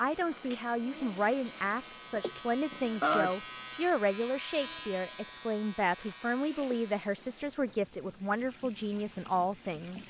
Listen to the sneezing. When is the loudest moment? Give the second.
3 s.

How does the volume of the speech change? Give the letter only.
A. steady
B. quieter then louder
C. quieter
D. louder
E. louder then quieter
A.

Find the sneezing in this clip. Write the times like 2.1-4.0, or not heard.
2.1-3.4, 6.6-7.2.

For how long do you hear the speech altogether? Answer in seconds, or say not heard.
10 s.